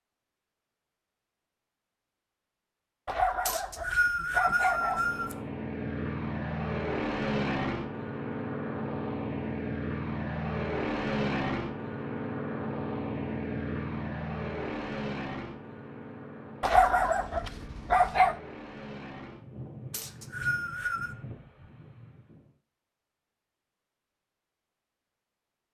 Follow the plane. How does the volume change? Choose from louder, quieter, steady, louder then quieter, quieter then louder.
quieter.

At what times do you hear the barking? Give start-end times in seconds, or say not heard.
3.0-5.1, 16.6-18.4.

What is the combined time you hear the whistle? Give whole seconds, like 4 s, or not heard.
3 s.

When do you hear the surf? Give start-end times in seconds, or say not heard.
not heard.